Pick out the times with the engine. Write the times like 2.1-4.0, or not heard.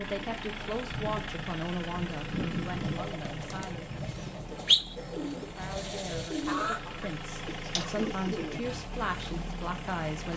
0.0-10.3.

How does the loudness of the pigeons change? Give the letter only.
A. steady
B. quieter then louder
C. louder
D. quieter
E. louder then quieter
E.